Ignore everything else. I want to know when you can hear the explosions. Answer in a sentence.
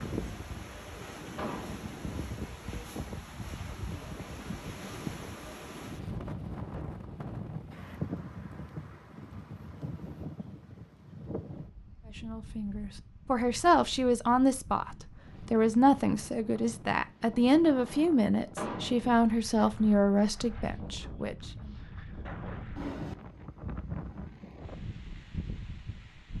You can hear the explosions from 1.4 to 1.8 s and from 18.6 to 19.0 s.